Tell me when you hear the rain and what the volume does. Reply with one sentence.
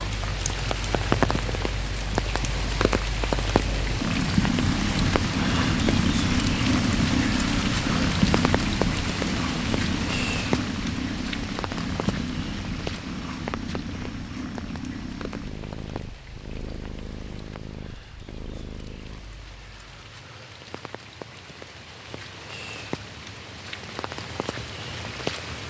The rain can be heard from 0.0 to 25.6 s, getting quieter then louder.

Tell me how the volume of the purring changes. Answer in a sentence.
The volume of the purring goes up, then down.